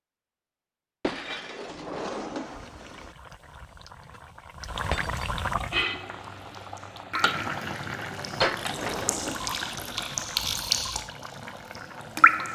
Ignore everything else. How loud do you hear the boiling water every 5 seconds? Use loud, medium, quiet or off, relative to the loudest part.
medium, loud, medium.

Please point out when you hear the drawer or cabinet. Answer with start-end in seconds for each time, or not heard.
1.6-3.1, 8.6-10.1.